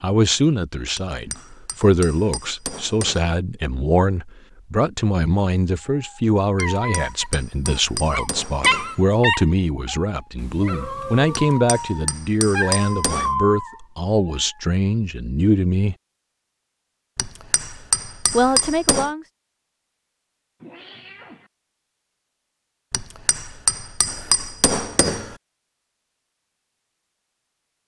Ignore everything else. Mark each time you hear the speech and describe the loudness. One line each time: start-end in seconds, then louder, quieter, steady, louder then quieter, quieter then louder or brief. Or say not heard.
0.0-15.9 steady
18.3-19.2 brief.